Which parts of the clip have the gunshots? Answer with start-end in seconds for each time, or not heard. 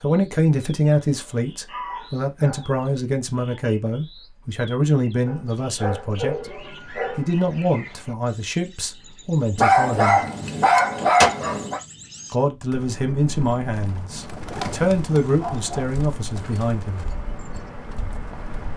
10.4-11.3.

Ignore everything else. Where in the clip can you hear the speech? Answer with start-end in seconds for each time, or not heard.
0.0-6.5, 7.2-10.2, 12.3-17.1.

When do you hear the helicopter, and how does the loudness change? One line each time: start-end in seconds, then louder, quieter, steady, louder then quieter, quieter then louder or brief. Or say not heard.
not heard.